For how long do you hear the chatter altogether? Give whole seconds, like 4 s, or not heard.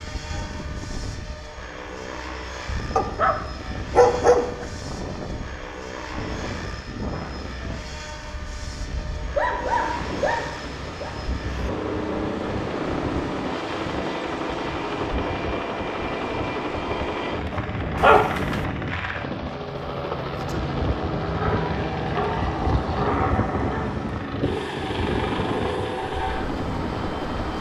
not heard.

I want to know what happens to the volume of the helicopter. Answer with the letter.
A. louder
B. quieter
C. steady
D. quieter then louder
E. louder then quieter
A.